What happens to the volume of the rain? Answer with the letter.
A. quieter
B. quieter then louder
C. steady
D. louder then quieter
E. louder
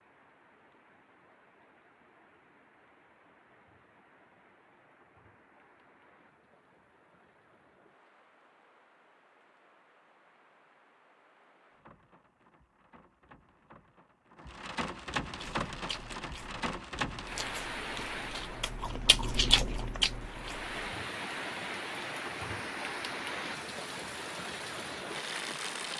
E.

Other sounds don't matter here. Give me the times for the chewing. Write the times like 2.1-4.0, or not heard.
15.3-20.9.